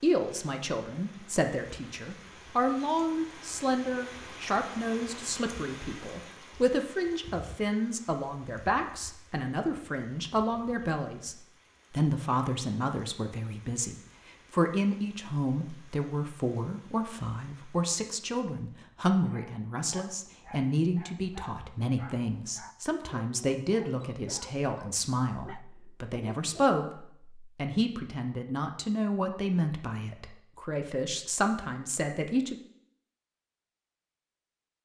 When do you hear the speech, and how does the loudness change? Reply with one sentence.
The speech can be heard from 0.0 to 32.5 s, at a steady volume.